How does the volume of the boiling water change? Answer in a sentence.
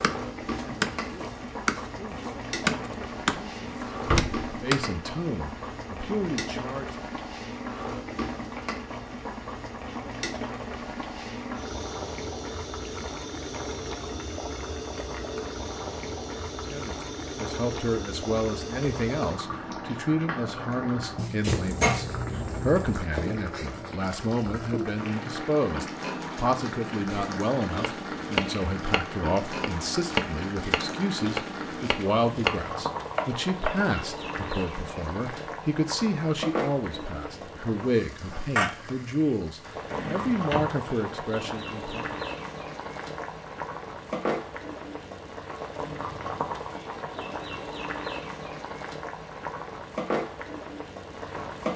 The volume of the boiling water stays about the same.